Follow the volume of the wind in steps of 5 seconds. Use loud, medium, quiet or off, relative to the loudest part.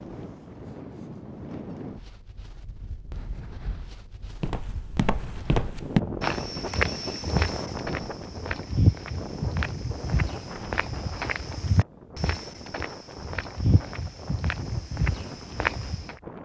medium, loud, medium, medium.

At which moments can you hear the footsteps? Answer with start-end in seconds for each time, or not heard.
4.4-16.1.